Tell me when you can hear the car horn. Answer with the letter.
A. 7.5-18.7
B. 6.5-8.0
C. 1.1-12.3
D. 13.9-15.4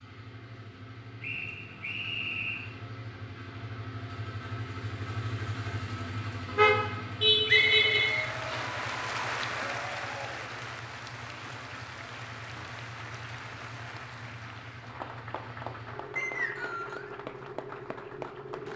B.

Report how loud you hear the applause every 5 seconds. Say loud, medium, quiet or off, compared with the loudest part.
off, loud, medium, medium.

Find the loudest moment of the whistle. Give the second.
8 s.